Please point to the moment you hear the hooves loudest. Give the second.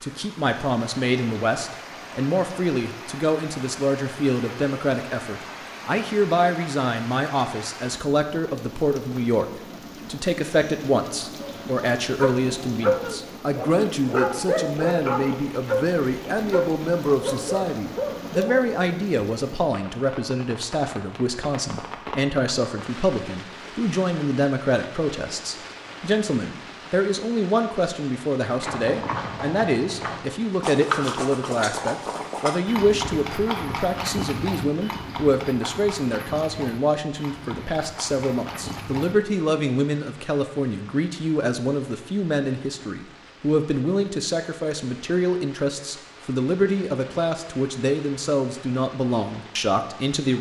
31 s.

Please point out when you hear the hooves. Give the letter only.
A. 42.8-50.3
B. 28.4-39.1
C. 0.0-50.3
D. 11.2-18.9
B.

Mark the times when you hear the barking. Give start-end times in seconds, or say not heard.
11.2-18.9.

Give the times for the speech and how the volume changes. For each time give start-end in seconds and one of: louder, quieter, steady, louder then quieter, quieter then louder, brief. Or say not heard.
0.0-50.3 steady.